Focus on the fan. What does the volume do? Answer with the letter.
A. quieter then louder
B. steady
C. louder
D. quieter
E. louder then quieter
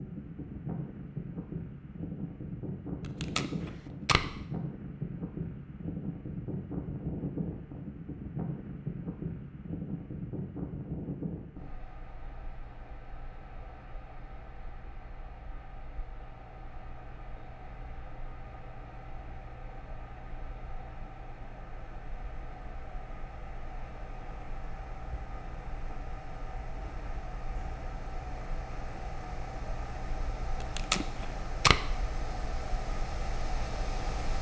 A.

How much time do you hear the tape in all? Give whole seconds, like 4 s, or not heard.
2 s.